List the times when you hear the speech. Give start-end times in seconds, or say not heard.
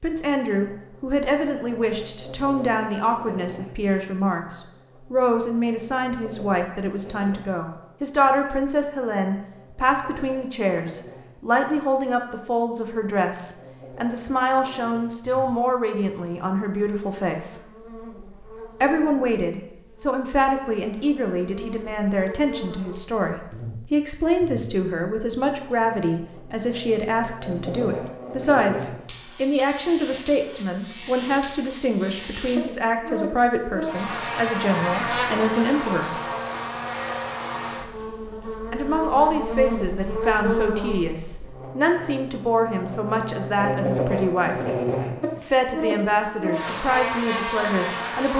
0.0-17.6, 18.8-36.2, 38.7-44.6, 45.4-48.3.